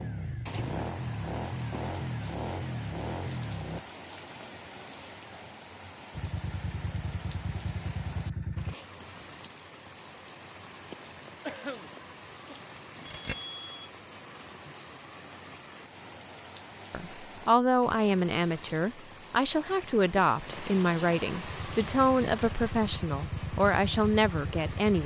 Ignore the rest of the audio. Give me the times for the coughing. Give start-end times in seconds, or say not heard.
11.4-12.6.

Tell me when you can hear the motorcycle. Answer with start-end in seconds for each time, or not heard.
0.0-3.8, 6.2-8.8, 21.4-25.0.